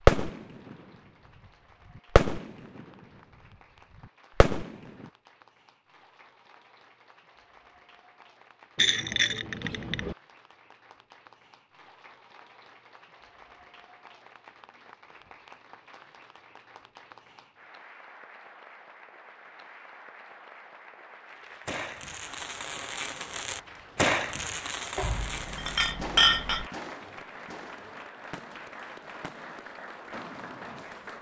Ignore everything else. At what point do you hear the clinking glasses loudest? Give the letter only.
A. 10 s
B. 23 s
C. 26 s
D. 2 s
C.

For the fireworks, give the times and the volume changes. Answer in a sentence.
You can hear the fireworks briefly from 0.1 to 0.8 s; briefly from 1.9 to 2.9 s; briefly from 4.4 to 5.1 s; and from 21.6 to 30.9 s, getting louder then quieter.